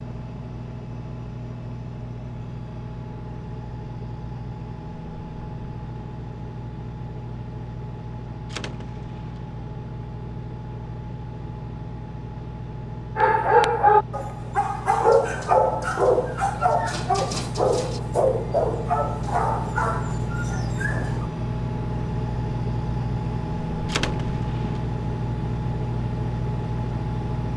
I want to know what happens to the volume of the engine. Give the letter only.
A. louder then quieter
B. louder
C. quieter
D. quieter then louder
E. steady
B.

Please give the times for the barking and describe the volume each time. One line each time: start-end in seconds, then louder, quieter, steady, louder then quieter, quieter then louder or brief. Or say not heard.
13.2-21.3 quieter.